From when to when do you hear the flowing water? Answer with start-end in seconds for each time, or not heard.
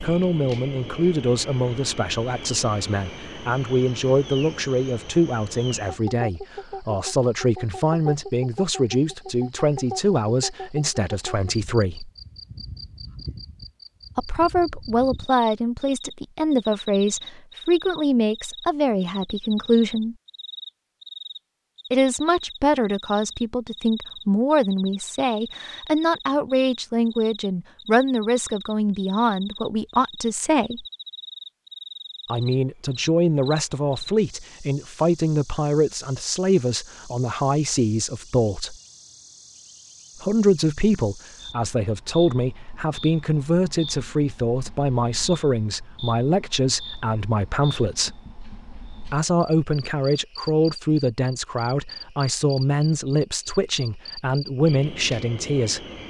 not heard.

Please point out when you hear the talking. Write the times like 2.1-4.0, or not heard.
0.0-12.1, 14.2-20.1, 21.9-30.9, 32.2-38.8, 40.2-48.2, 49.0-55.9.